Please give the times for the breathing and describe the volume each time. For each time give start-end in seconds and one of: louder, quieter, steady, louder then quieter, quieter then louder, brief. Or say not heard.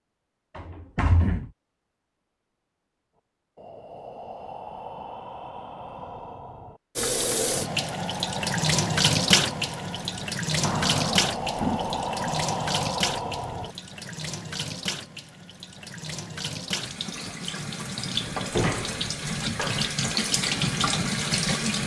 3.5-14.1 louder.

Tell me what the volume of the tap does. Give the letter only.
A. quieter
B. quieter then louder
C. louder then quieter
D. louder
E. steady
B.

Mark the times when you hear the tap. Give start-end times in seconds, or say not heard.
7.0-21.8.